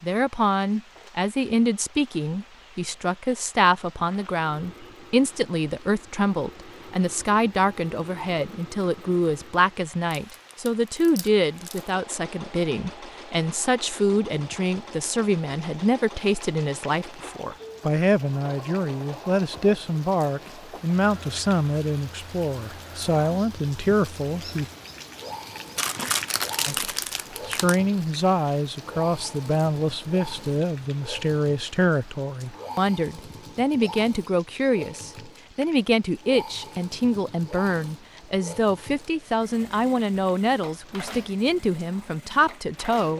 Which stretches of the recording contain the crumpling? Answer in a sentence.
The crumpling can be heard from 10.1 to 11.9 s and from 25.8 to 27.8 s.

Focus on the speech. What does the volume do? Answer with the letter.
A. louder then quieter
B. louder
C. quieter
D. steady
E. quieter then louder
D.